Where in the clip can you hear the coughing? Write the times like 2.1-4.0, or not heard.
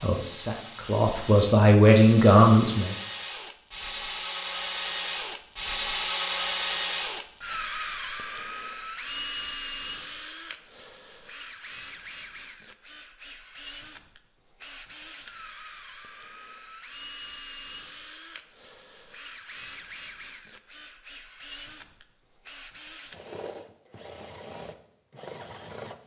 not heard.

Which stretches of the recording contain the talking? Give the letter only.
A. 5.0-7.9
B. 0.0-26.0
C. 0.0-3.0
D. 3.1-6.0
C.